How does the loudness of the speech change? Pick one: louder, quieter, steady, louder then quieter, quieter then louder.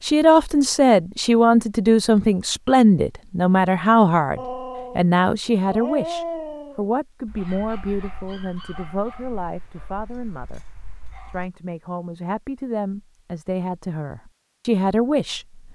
quieter then louder.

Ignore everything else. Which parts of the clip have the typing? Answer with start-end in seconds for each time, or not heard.
not heard.